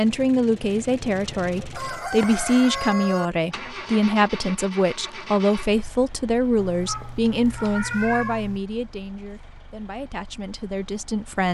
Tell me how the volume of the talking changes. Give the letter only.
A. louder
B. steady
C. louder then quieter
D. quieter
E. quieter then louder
D.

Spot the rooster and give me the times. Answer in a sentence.
You can hear the rooster from 1.7 to 3.3 s.